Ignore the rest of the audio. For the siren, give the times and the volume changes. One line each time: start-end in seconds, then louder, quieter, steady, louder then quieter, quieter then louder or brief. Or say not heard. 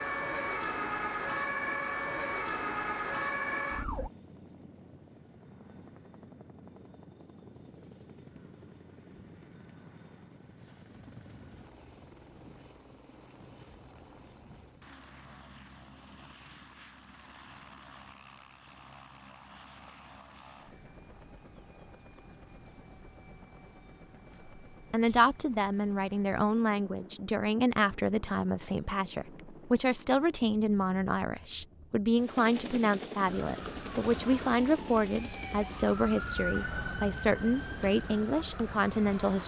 0.0-4.1 steady
33.2-39.4 louder then quieter.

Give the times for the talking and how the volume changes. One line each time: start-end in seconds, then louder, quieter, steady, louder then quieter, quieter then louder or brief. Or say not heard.
24.3-39.4 steady.